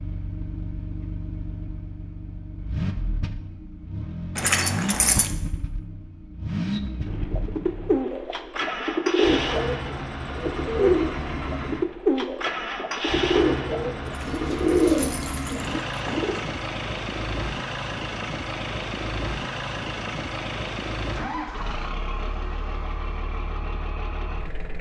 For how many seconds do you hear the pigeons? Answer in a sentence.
You can hear the pigeons for 9 seconds altogether.